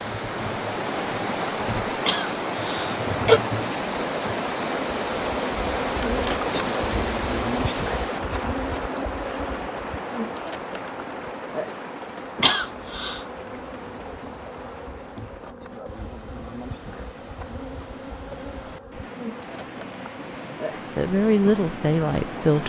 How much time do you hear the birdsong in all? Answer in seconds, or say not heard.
not heard.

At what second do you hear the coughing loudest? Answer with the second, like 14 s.
3 s.